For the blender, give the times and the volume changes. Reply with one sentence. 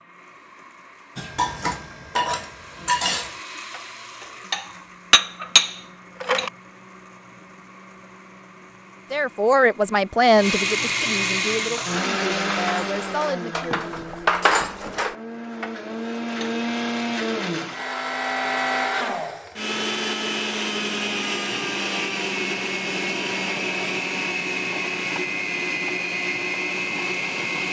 The blender can be heard from 0.0 to 27.6 s, getting louder.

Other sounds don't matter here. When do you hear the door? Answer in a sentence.
The door can't be heard in this clip.